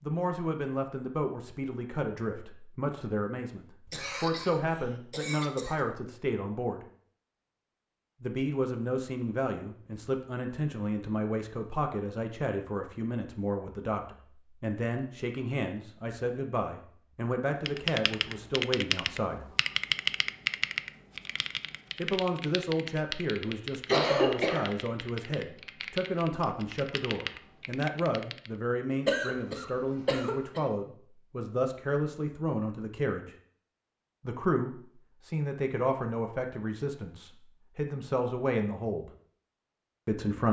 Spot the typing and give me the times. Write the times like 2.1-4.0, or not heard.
17.6-28.5.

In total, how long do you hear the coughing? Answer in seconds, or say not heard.
5 s.